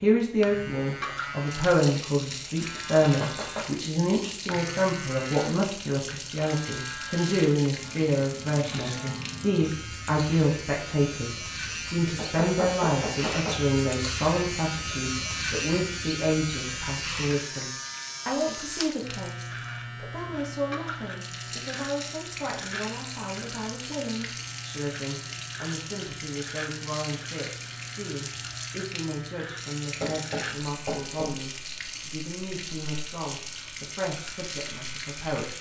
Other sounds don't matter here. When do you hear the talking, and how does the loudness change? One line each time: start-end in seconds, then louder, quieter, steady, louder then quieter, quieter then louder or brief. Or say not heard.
0.0-35.5 quieter.